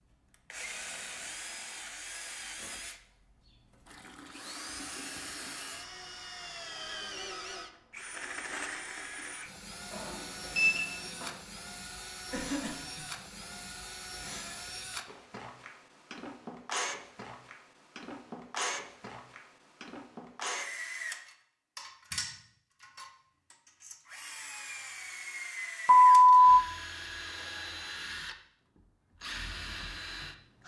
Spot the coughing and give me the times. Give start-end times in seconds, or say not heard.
12.3-13.1.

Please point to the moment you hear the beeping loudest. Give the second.
26 s.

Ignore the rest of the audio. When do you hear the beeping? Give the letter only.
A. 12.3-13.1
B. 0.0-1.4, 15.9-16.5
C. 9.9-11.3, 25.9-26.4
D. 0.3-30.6
C.